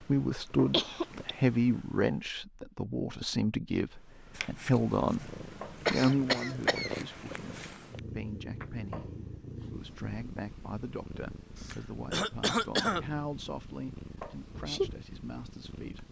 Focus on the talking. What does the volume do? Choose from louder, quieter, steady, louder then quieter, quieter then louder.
quieter.